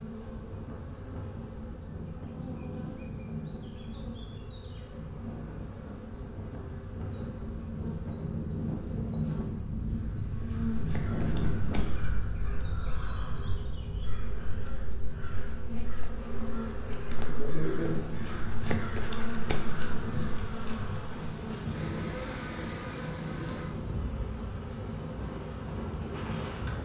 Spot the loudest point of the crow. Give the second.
19 s.